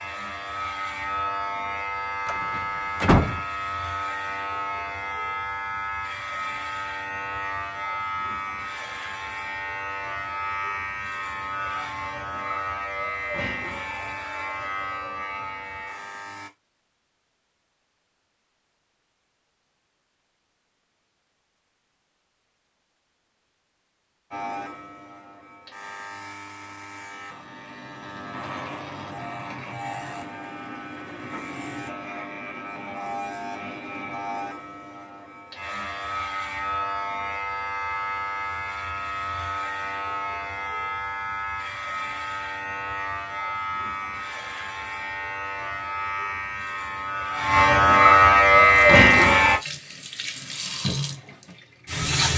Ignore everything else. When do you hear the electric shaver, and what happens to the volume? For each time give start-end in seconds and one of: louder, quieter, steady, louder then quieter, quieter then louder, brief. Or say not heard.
0.0-16.5 steady
24.3-49.6 louder.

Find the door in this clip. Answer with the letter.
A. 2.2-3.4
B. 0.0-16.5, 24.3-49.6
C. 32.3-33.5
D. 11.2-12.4
A.